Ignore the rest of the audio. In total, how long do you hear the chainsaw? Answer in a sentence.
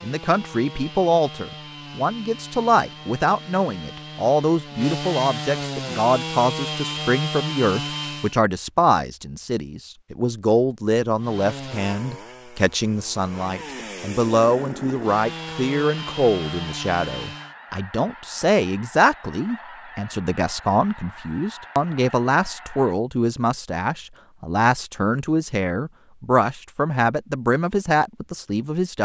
The chainsaw can be heard for 15 seconds in total.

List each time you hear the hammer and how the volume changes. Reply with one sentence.
You can't hear the hammer here.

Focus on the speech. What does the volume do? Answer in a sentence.
The loudness of the speech stays about the same.